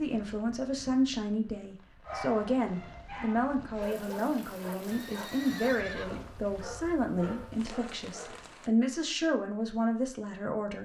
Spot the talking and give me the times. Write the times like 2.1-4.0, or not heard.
0.0-10.8.